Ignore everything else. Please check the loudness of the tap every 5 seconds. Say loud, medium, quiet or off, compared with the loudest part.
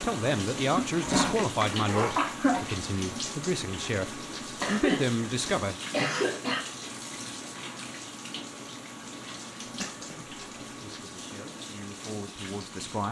loud, loud, medium.